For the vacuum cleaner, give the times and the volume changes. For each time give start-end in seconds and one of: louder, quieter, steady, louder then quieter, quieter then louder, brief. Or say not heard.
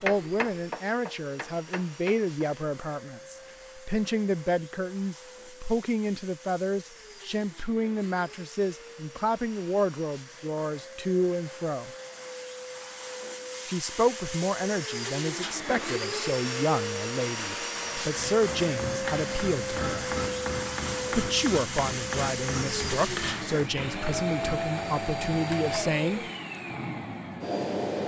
0.0-28.0 louder.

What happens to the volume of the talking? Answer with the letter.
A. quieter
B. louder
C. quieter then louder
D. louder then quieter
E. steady
E.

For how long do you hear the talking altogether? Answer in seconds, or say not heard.
23 s.